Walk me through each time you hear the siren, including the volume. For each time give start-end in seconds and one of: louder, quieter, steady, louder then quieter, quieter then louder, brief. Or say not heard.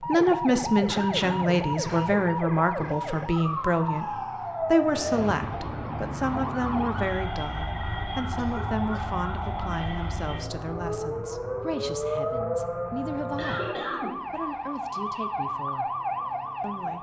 0.0-16.9 steady.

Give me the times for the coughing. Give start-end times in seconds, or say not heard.
0.8-2.1, 8.3-9.1, 13.3-14.2.